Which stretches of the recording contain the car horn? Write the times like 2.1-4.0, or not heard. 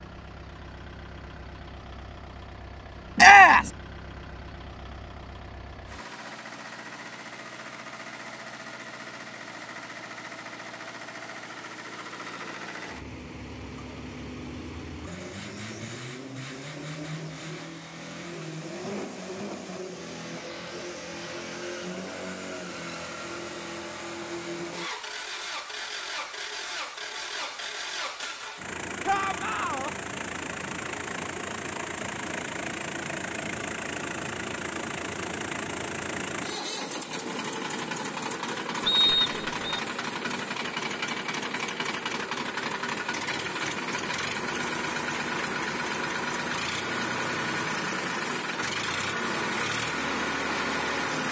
not heard.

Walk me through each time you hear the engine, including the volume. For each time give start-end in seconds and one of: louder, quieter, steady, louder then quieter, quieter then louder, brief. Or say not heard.
0.0-51.2 louder.